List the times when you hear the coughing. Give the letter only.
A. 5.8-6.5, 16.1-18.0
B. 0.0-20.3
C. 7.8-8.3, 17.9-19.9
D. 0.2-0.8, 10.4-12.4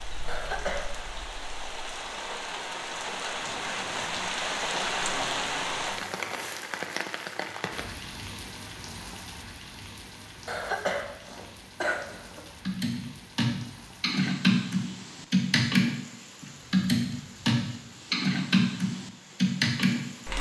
D.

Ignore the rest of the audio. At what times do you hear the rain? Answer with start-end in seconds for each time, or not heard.
0.0-20.3.